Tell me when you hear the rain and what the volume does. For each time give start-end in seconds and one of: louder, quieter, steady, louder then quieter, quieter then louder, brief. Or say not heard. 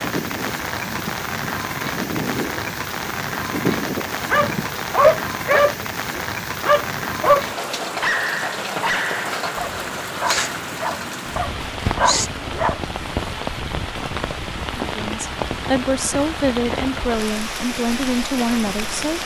0.0-19.2 steady.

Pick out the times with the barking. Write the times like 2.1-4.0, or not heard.
4.3-12.8.